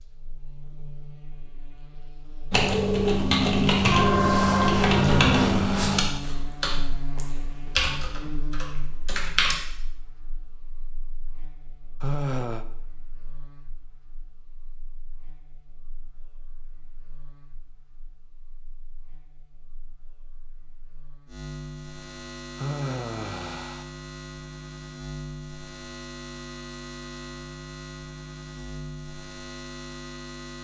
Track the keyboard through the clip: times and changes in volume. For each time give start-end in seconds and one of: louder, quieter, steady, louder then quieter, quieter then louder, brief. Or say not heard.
2.5-9.6 quieter.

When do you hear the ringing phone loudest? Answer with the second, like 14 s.
4 s.